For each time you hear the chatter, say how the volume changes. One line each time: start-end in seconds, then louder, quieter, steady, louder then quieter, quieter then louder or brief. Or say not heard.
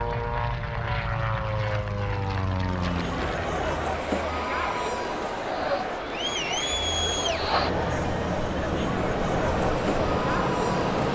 2.7-11.0 steady.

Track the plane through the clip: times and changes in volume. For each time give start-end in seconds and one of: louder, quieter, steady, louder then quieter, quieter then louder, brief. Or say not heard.
0.0-11.0 quieter then louder.